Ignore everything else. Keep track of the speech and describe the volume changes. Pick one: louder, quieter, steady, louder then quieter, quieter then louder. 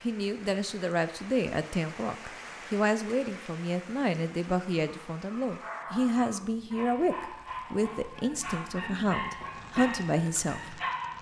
steady.